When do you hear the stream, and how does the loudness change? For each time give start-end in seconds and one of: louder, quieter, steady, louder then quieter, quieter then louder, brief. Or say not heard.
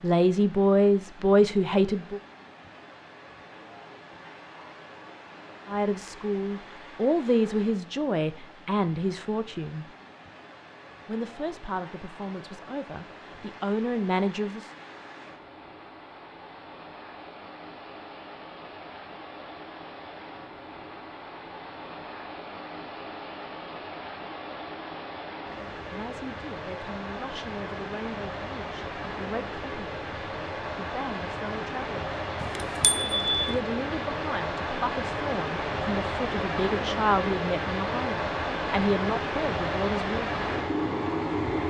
0.0-41.6 louder.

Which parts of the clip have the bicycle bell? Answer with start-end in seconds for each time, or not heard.
32.4-33.6.